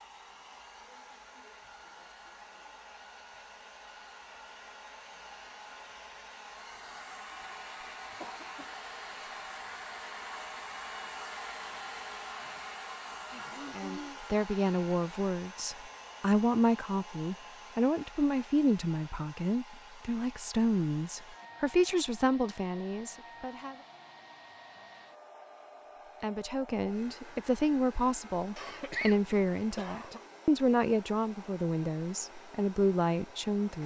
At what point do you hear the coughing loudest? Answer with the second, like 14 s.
29 s.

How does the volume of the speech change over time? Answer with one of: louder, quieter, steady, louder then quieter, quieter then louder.
steady.